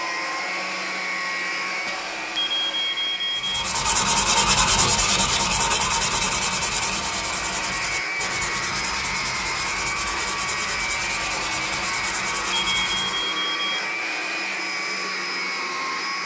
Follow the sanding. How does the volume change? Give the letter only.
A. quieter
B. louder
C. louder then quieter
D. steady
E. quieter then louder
A.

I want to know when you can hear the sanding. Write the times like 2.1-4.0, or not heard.
3.4-13.3.